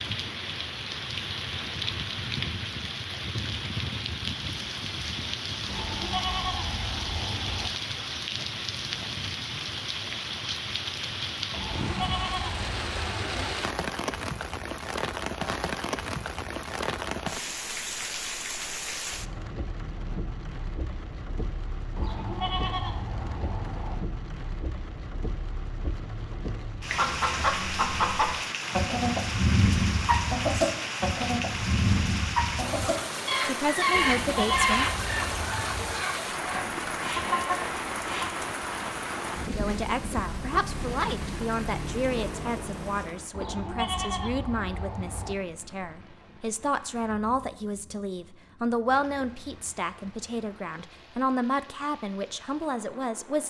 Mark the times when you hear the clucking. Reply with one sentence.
You can hear the clucking from 26.9 to 38.4 s.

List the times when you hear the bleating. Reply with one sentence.
You can hear the bleating from 5.7 to 7.7 s, from 11.6 to 13.6 s, from 21.9 to 23.9 s, from 33.9 to 36.0 s and from 43.3 to 45.4 s.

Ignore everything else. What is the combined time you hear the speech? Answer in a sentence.
You can hear the speech for 15 seconds altogether.